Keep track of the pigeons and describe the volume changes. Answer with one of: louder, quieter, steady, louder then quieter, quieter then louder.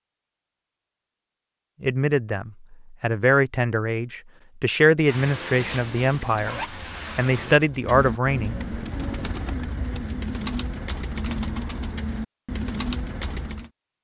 louder.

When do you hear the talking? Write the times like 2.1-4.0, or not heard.
1.8-8.6.